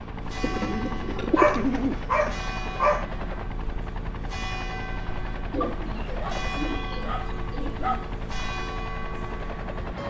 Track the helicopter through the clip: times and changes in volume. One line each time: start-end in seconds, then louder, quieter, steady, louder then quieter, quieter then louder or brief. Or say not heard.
0.0-10.0 steady.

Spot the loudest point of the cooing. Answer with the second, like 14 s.
2 s.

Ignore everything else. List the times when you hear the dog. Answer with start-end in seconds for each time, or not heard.
1.4-3.0, 5.6-8.2.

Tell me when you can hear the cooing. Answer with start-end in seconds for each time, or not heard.
0.4-2.4, 5.5-8.1.